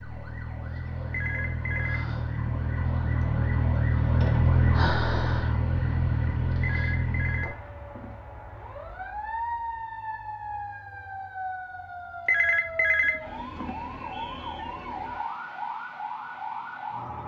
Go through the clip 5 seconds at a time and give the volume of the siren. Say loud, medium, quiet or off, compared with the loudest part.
loud, loud, medium, medium.